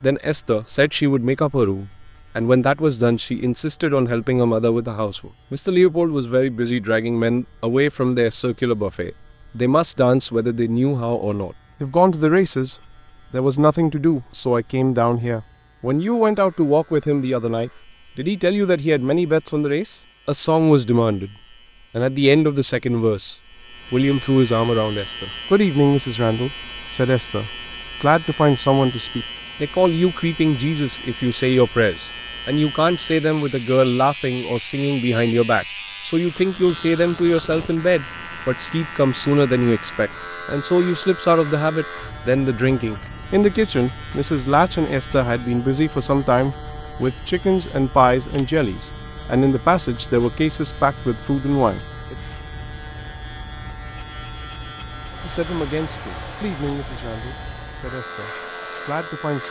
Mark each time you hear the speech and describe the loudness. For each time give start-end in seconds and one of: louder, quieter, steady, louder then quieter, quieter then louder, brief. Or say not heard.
0.0-21.3 steady
21.9-52.1 steady
55.2-59.4 quieter then louder.